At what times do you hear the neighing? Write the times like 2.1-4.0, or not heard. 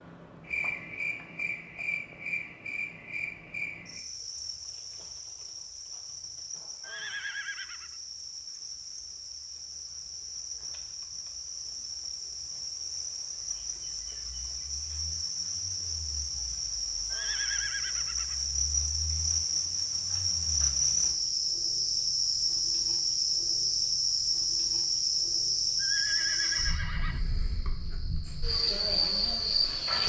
6.8-7.9, 17.1-18.4, 25.8-27.2.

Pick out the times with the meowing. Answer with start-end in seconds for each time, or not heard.
not heard.